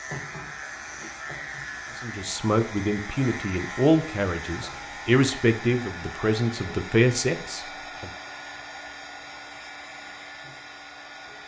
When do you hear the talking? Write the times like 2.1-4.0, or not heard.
2.0-8.1.